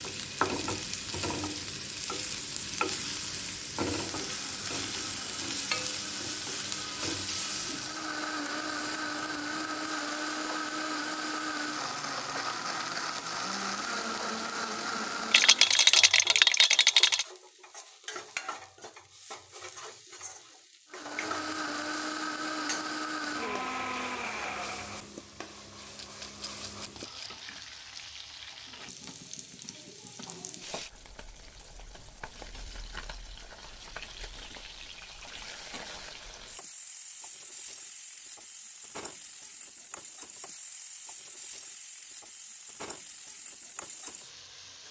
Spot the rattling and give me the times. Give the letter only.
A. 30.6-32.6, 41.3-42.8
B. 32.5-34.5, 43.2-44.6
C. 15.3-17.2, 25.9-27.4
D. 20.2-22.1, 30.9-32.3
C.